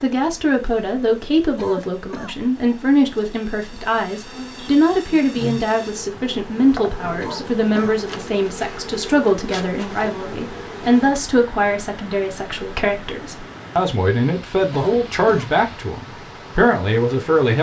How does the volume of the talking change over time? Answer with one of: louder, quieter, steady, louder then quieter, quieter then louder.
steady.